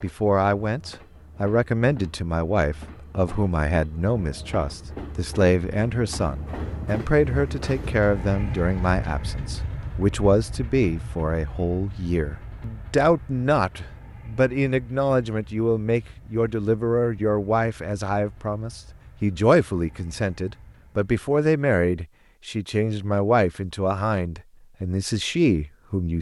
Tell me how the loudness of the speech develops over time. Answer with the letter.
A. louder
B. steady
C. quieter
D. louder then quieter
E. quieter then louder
B.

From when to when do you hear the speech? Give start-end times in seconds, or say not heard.
0.0-26.1.